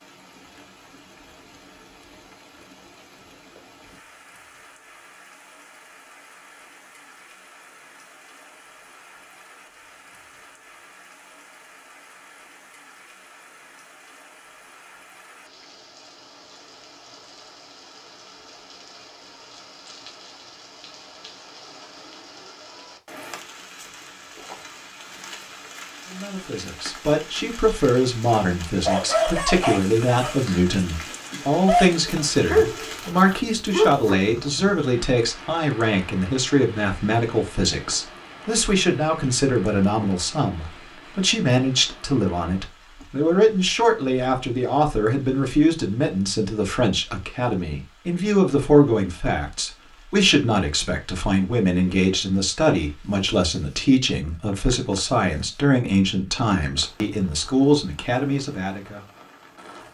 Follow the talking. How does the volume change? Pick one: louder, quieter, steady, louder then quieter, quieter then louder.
steady.